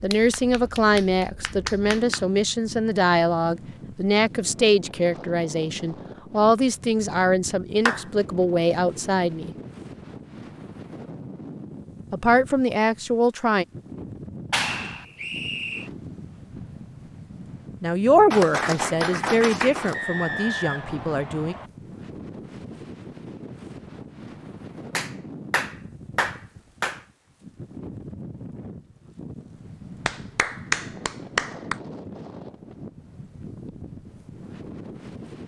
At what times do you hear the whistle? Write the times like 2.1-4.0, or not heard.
14.6-15.9, 19.9-21.7.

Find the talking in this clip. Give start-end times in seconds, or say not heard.
0.0-9.6, 12.1-13.7, 17.8-21.6.